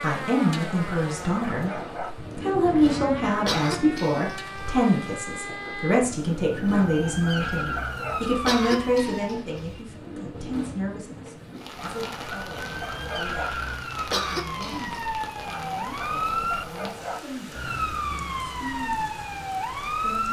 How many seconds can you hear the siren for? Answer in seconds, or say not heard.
18 s.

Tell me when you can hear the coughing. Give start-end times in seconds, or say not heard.
3.5-4.8, 8.4-9.8, 14.1-15.1.